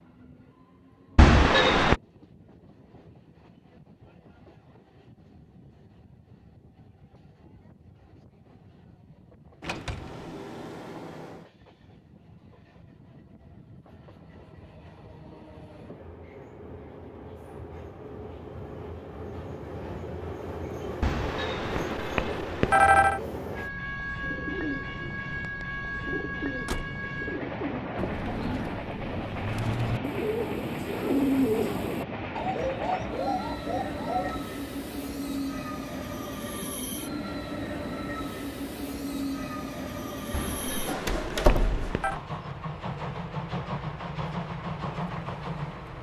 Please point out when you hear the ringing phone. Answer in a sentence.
The ringing phone can be heard from 1.1 to 2.0 s, from 21.0 to 23.2 s and from 40.3 to 42.1 s.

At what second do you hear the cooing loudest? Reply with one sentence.
The loudest moment of the cooing is at 31 seconds.